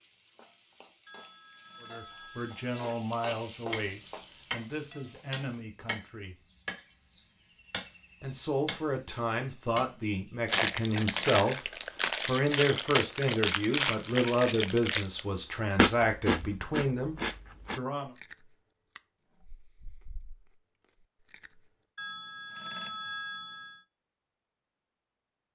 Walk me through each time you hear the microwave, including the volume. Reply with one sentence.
The microwave can't be heard in this clip.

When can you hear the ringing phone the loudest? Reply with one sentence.
The loudest moment of the ringing phone is at 23 seconds.